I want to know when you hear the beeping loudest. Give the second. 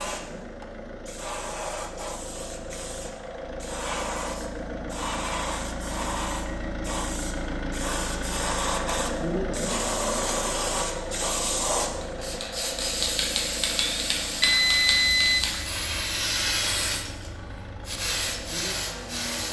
15 s.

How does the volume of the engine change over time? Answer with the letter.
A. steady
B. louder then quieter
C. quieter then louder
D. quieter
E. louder
B.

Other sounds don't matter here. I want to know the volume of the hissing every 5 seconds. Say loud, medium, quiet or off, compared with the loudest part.
medium, loud, loud, loud.